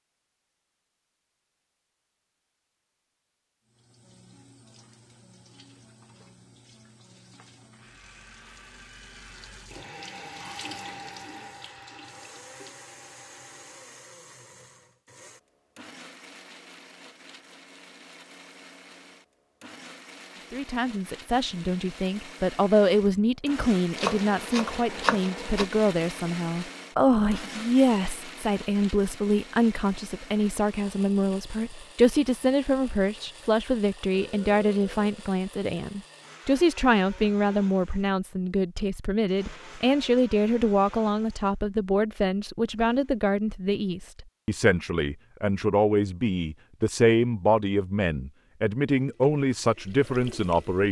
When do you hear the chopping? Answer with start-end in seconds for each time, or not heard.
23.9-25.6.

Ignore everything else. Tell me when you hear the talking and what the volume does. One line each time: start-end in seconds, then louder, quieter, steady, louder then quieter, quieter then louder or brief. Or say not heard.
20.5-50.8 steady.